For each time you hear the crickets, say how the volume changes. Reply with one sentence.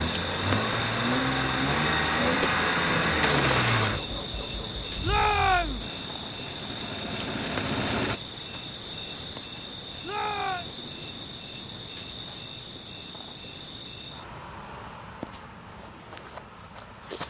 The crickets can be heard from 0.0 to 17.2 s, getting quieter.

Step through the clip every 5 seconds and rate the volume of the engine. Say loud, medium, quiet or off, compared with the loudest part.
loud, medium, off, off.